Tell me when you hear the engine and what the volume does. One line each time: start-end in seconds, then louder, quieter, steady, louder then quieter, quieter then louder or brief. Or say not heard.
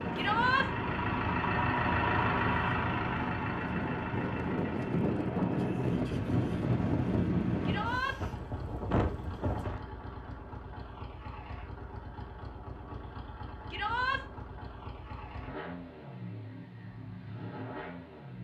0.0-18.3 quieter.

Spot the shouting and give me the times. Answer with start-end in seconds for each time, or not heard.
0.1-0.7, 7.7-8.2, 13.7-14.2.